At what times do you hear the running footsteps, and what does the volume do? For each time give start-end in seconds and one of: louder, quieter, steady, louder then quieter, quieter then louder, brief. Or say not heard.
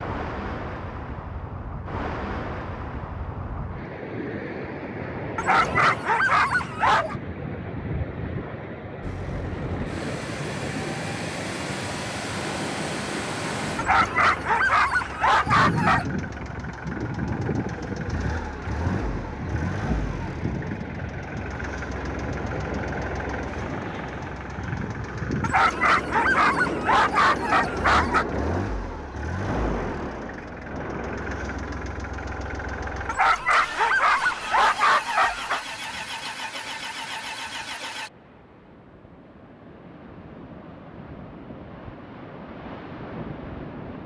not heard.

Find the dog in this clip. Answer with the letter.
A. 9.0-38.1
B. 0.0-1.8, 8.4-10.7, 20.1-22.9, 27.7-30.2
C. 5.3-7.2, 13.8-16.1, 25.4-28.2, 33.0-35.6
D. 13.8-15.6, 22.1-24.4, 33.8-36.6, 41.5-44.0
C.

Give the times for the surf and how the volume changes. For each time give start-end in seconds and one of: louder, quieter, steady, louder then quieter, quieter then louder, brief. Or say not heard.
0.0-44.0 quieter.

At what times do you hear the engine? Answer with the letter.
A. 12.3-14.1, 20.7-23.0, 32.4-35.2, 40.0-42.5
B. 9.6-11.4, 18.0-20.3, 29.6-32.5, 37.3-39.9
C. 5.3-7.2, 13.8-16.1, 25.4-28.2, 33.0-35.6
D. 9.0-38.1
D.